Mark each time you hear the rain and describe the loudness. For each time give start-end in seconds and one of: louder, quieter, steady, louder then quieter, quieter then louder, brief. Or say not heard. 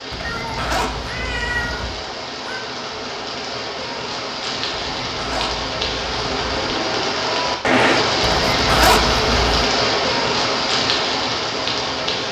0.0-12.2 louder.